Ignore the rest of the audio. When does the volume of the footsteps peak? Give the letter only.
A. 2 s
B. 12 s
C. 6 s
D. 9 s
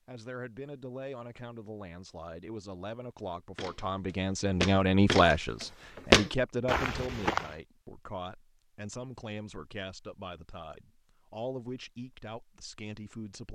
C.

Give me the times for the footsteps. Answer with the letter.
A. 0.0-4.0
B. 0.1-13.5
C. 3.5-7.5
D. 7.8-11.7
C.